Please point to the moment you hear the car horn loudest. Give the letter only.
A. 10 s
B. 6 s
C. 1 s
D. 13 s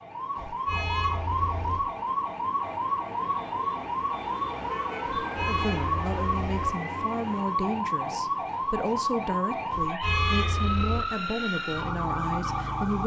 A.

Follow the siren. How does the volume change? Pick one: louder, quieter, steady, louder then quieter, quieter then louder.
steady.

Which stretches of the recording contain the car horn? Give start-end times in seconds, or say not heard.
0.3-1.9, 5.2-6.7, 9.7-11.0.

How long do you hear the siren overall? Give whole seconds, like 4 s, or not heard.
13 s.